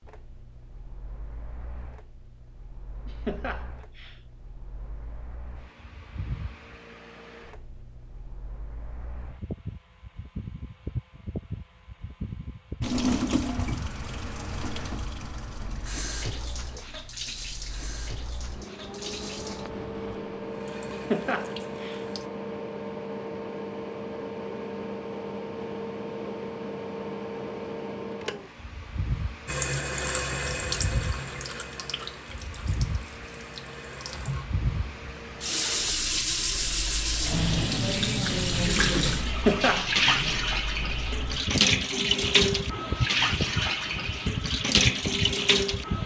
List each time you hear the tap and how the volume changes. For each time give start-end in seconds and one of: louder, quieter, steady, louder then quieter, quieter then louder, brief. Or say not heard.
12.8-22.3 quieter
29.4-46.0 louder.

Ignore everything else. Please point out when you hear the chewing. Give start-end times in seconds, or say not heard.
not heard.